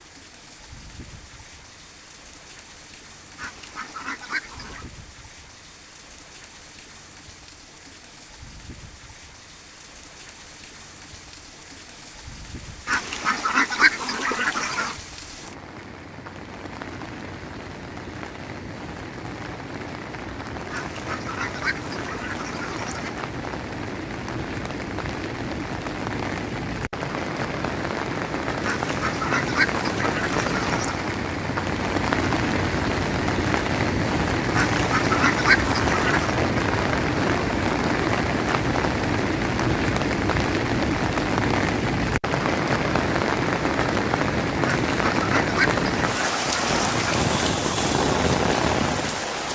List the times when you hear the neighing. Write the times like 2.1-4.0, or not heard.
not heard.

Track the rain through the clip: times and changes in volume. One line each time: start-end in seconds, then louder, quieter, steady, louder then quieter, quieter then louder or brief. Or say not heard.
0.0-49.4 louder.